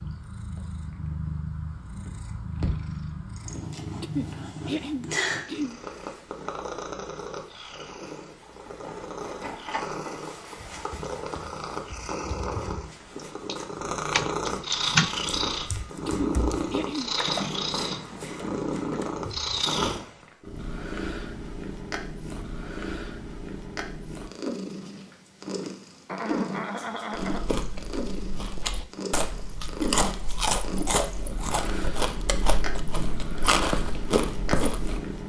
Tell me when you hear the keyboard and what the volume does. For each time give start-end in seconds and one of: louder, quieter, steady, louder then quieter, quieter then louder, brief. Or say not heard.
10.7-19.6 louder then quieter.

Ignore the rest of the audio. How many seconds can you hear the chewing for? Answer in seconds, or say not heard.
8 s.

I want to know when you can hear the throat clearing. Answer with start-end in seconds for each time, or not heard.
4.0-5.8, 16.1-17.1, 26.1-27.5.